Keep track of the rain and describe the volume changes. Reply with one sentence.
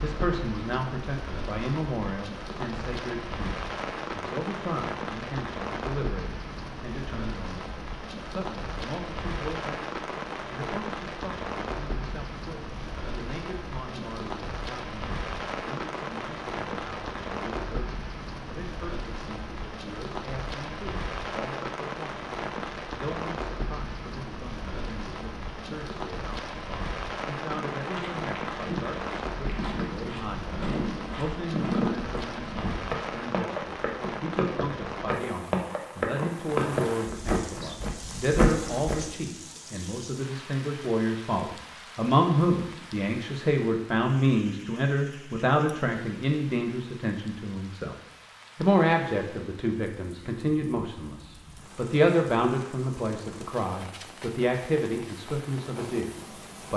The loudness of the rain goes down.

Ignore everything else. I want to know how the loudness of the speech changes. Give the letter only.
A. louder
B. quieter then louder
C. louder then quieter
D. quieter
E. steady
B.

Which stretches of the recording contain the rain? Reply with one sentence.
The rain can be heard from 0.0 to 56.7 s.